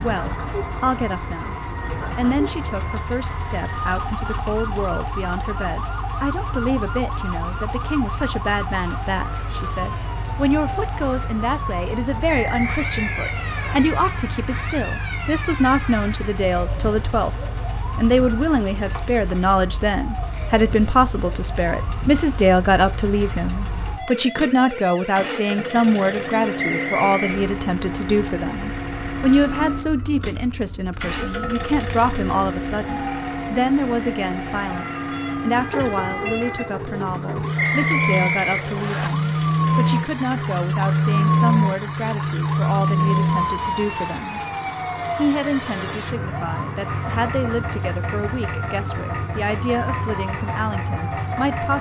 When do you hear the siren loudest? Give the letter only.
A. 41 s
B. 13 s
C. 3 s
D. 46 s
A.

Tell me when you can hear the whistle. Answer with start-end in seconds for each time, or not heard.
12.2-13.8, 26.6-27.4, 37.5-39.1.